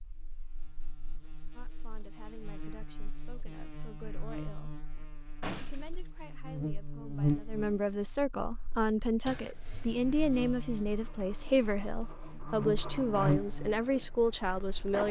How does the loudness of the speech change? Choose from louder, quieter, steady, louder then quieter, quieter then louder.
louder.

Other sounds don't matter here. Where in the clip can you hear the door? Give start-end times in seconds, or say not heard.
5.0-5.9, 9.2-9.9.